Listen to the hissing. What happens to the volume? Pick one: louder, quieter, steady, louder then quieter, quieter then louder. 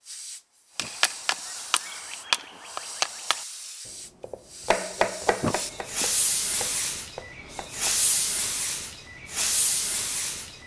louder.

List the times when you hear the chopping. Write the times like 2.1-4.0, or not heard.
0.8-3.5, 4.2-7.9.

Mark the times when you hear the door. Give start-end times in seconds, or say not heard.
0.8-1.4, 5.4-6.1.